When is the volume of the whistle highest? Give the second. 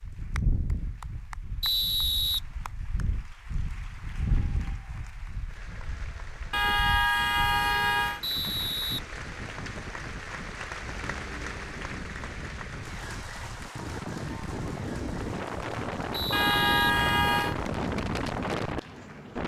2 s.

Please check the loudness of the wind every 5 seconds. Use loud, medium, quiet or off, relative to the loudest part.
medium, quiet, medium, loud.